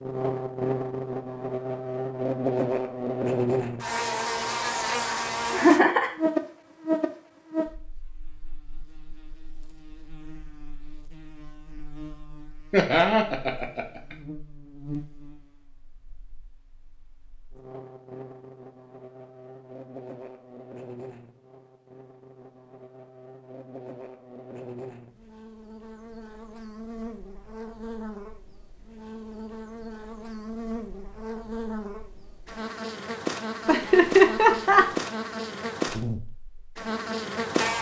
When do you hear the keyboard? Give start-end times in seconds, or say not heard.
not heard.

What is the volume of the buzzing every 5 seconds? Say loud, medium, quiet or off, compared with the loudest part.
loud, loud, quiet, quiet, quiet, quiet, medium, loud.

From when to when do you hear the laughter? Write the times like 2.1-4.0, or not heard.
5.5-6.2, 12.7-14.2, 33.6-34.9.